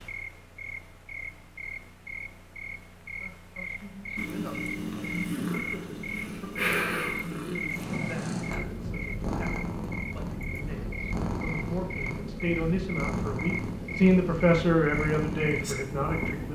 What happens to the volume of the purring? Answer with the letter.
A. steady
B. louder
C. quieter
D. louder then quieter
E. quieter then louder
A.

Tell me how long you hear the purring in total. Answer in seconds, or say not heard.
12 s.